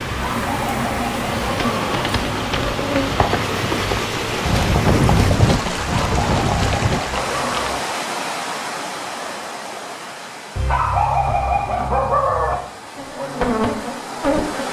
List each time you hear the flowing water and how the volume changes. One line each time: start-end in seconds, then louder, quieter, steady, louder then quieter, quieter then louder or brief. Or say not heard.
0.0-14.6 quieter.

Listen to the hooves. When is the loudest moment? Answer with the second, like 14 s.
5 s.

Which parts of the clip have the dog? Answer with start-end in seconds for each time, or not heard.
0.1-2.0, 5.8-7.8, 10.6-12.6.